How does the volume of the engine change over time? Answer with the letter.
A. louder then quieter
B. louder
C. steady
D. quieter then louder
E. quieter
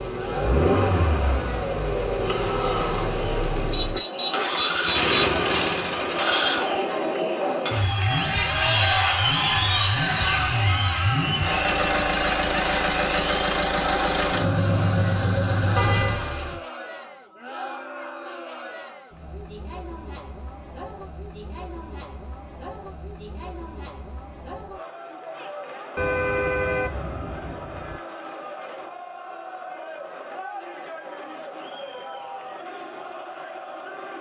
D.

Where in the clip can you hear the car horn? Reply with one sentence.
You can hear the car horn from 3.7 to 5.1 s, from 15.8 to 16.6 s and from 25.9 to 28.0 s.